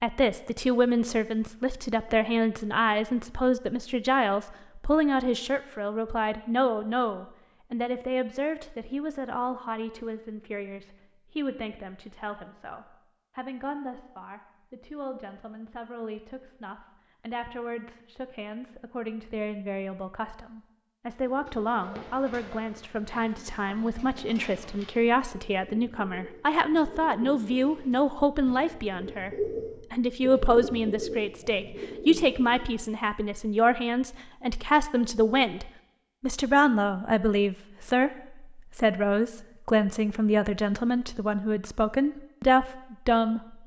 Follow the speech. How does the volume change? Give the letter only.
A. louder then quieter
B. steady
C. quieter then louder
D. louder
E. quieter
C.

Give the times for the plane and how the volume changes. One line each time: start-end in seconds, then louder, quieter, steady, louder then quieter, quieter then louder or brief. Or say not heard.
not heard.